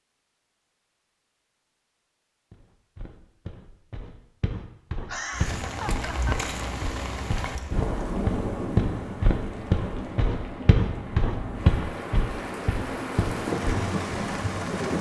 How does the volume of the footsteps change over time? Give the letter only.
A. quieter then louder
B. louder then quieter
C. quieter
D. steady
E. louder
E.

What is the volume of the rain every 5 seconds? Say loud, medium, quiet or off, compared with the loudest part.
off, loud, loud.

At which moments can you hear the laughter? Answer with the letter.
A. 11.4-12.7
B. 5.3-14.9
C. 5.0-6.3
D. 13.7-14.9
C.